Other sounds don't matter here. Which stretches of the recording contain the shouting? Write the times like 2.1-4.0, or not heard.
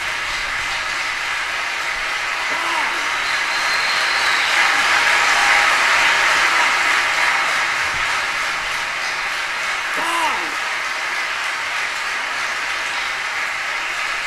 2.5-3.1, 6.3-6.8, 9.9-10.6.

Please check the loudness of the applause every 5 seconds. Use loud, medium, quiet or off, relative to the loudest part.
loud, loud, medium.